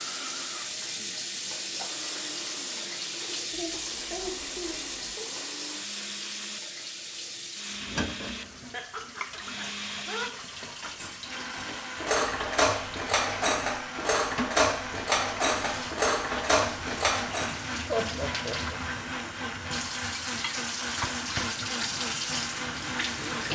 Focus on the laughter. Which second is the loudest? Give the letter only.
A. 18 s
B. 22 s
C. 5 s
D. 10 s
A.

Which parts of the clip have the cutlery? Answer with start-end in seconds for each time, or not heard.
10.6-17.6.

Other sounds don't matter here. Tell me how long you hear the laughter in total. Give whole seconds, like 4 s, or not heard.
4 s.